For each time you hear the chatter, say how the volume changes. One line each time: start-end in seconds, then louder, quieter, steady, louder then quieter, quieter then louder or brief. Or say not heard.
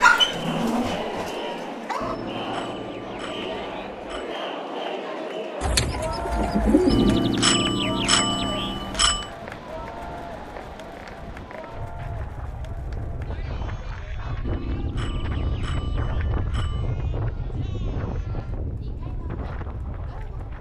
0.0-20.5 quieter.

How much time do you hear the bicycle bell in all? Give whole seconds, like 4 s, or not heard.
7 s.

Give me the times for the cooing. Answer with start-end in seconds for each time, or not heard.
5.6-7.2.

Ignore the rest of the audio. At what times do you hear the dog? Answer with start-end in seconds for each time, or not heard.
0.0-2.2.